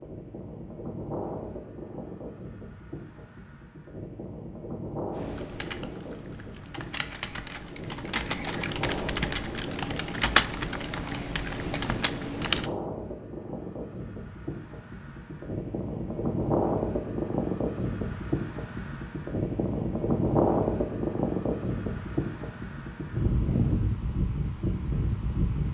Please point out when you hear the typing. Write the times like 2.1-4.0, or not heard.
5.1-12.7.